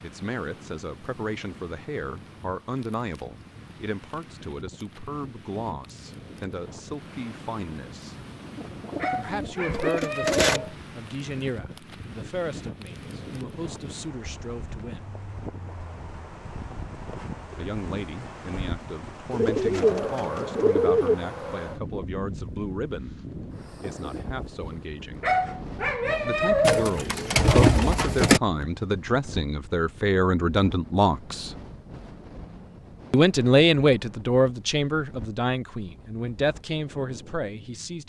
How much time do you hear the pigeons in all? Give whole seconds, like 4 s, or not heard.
6 s.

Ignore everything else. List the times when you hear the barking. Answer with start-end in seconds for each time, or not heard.
8.9-10.8, 25.2-27.0.